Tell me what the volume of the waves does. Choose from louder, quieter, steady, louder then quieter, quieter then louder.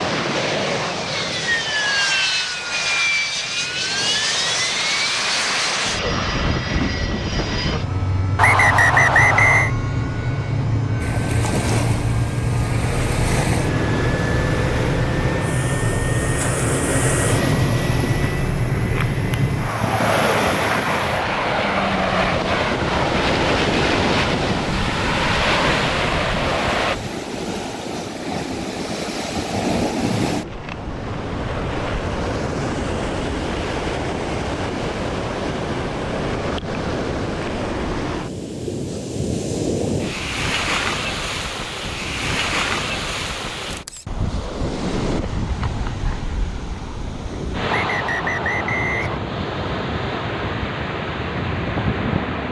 steady.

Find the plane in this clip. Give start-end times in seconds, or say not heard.
0.0-26.9.